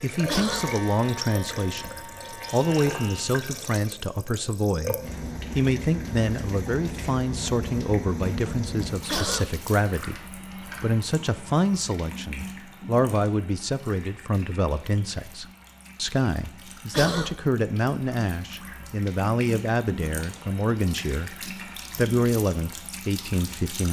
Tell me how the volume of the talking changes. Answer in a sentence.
The loudness of the talking stays about the same.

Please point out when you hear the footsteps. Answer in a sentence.
The footsteps can't be heard in this clip.